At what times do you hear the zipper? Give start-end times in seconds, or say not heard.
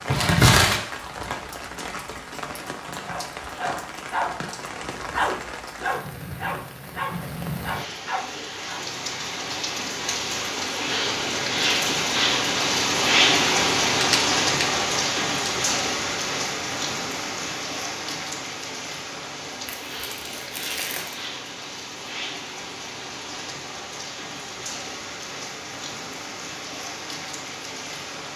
not heard.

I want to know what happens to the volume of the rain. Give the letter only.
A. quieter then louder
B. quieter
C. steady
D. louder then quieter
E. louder
D.